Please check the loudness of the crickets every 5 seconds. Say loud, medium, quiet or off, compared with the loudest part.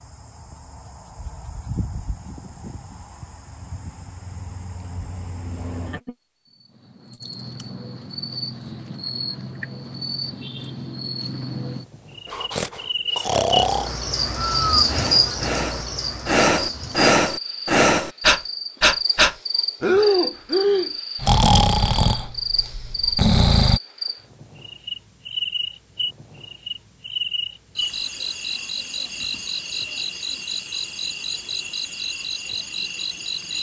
quiet, medium, loud, loud, loud, loud, loud.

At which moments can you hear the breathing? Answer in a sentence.
The breathing can be heard from 12.3 to 23.8 s.